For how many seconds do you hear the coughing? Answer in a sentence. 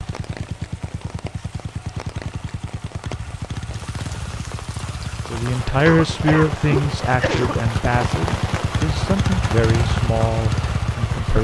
You can hear the coughing for 2 seconds altogether.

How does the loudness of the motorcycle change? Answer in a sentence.
The loudness of the motorcycle goes up.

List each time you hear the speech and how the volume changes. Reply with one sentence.
The speech can be heard from 5.2 to 11.3 s, getting quieter.